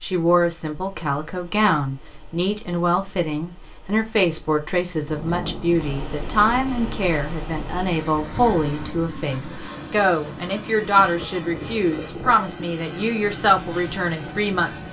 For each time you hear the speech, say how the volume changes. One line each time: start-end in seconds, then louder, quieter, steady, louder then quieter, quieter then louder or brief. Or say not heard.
0.0-14.8 steady.